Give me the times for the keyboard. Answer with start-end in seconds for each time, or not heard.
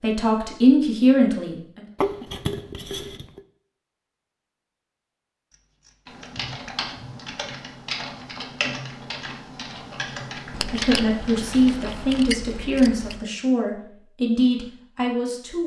6.0-12.2.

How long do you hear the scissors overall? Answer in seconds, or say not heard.
6 s.